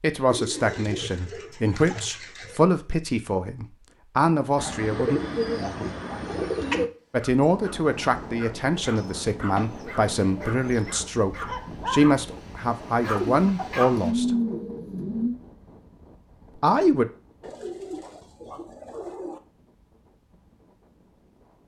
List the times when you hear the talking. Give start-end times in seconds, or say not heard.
0.0-5.2, 7.1-14.3, 16.6-17.1.